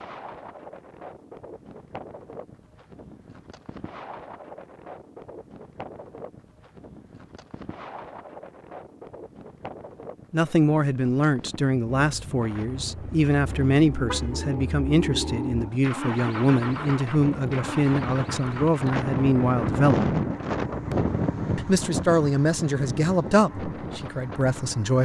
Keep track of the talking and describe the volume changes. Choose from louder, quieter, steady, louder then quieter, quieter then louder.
steady.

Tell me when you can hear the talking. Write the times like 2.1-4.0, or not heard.
10.3-20.1, 21.6-25.0.